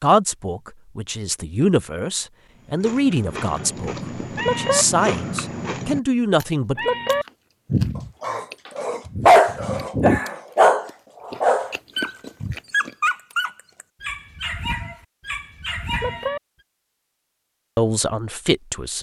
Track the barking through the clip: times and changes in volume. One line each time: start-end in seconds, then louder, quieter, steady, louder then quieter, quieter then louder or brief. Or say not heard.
8.0-16.2 quieter.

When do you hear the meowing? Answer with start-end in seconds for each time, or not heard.
4.3-4.8, 6.8-7.2, 15.9-16.4.